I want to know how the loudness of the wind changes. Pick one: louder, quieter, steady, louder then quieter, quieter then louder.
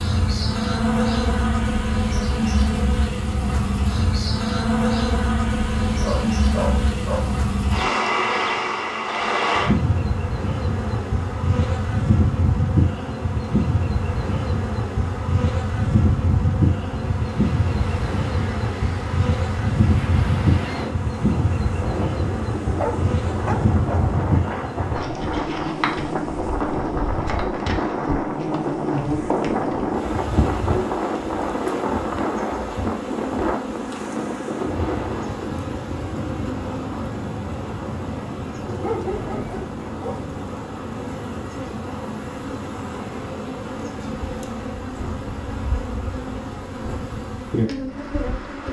louder then quieter.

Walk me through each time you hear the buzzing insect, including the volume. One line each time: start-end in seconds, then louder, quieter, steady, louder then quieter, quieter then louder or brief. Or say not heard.
0.0-48.6 quieter.